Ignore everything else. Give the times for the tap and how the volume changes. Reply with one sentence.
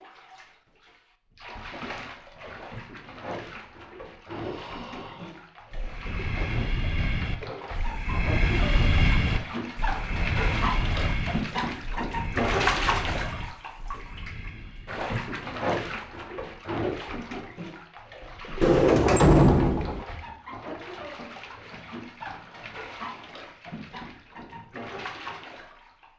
You can hear the tap from 0.0 to 26.1 s, getting louder then quieter.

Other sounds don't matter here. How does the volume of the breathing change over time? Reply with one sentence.
The volume of the breathing goes up, then down.